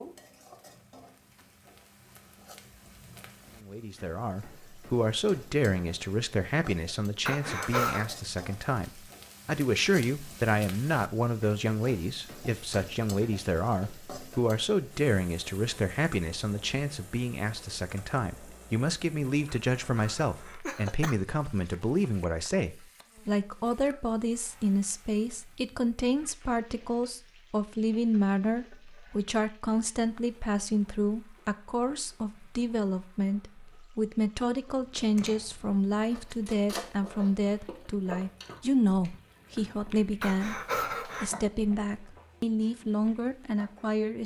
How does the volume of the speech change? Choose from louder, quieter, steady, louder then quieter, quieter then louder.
steady.